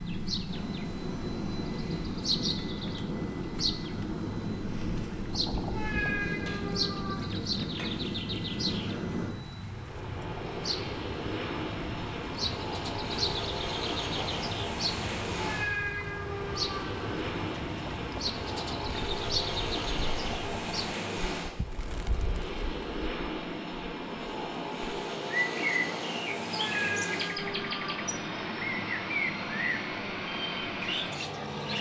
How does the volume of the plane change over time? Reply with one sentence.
The loudness of the plane stays about the same.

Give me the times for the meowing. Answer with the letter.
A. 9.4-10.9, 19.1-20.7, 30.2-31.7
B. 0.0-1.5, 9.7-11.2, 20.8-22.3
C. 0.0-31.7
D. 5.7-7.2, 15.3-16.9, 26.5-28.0
D.